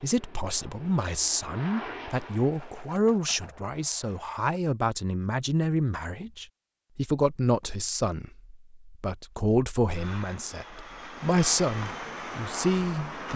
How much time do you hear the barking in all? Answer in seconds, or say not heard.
not heard.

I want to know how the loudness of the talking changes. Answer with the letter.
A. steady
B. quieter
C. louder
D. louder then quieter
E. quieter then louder
A.